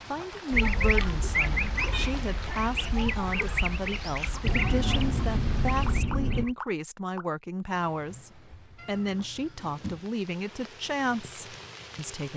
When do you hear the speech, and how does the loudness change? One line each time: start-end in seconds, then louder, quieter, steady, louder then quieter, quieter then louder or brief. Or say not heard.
0.1-12.3 steady.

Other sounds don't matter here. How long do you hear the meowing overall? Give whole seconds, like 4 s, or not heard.
5 s.